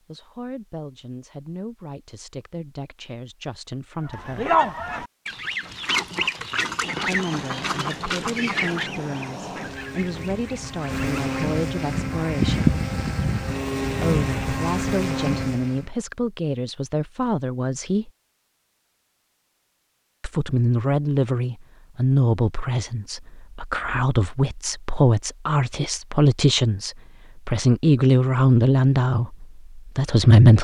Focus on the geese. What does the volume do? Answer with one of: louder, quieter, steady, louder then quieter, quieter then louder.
quieter.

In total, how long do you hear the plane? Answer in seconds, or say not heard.
9 s.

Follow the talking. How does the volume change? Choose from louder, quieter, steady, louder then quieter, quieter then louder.
louder.